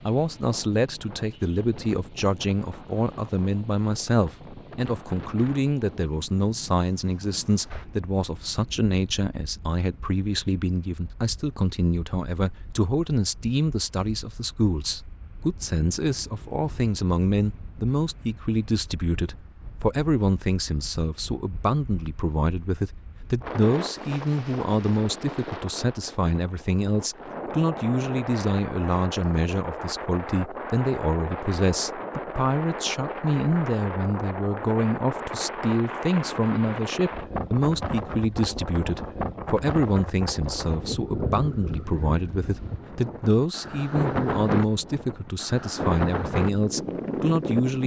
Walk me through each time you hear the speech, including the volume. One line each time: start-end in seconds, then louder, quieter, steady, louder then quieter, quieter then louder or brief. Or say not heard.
0.1-47.8 steady.